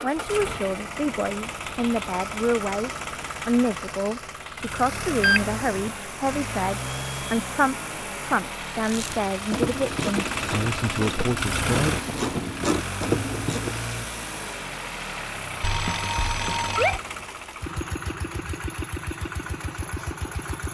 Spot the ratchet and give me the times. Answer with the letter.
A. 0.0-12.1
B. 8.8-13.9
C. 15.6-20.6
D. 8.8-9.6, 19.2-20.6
B.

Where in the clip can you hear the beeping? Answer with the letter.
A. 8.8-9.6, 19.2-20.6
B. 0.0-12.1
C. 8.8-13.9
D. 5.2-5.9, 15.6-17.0
D.